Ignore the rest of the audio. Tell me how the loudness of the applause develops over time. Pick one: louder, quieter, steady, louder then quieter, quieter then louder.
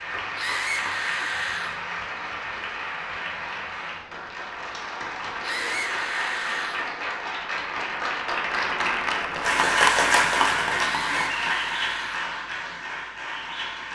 louder then quieter.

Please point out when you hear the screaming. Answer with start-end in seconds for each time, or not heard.
0.3-1.8, 5.4-6.9, 10.8-12.3.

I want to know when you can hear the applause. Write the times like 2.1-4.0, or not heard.
0.0-13.8.